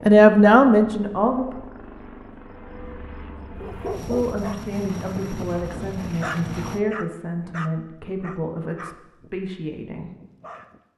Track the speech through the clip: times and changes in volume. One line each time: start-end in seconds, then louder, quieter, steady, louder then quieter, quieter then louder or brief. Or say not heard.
0.0-1.6 brief
4.0-10.1 steady.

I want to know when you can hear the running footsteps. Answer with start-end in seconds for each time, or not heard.
not heard.